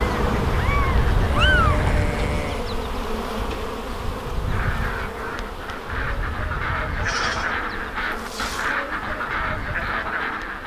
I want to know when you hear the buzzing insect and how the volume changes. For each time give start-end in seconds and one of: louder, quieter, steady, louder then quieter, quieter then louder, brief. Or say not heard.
0.0-10.6 quieter.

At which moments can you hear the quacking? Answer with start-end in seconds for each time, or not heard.
0.1-2.4, 4.5-10.6.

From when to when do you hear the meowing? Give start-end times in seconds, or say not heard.
0.0-1.9.